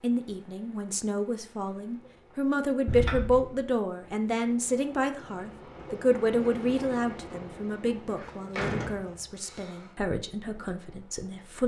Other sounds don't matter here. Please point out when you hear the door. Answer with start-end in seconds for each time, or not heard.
2.9-3.6, 8.1-9.9.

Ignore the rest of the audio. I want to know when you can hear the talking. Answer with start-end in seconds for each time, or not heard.
0.0-11.6.